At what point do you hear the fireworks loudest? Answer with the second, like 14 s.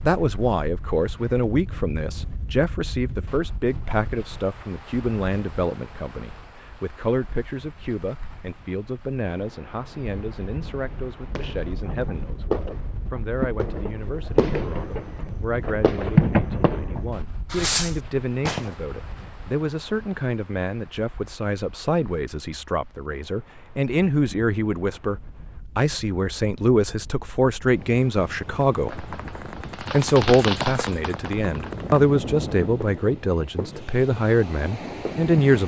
16 s.